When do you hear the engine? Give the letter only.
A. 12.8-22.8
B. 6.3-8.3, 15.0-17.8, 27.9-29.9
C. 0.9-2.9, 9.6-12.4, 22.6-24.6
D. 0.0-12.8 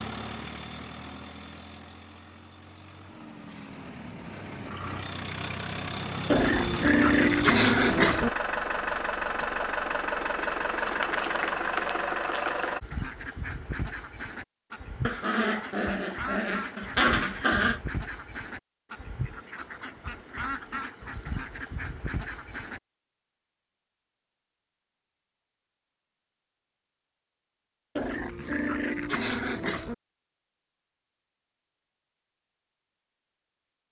D.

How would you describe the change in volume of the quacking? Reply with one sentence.
The volume of the quacking stays about the same.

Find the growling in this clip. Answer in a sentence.
The growling can be heard from 6.3 to 8.3 s, from 15.0 to 17.8 s and from 27.9 to 29.9 s.